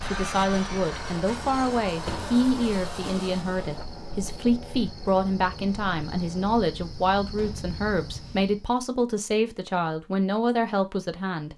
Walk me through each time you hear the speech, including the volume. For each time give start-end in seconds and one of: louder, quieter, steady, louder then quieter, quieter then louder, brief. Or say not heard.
0.0-11.5 steady.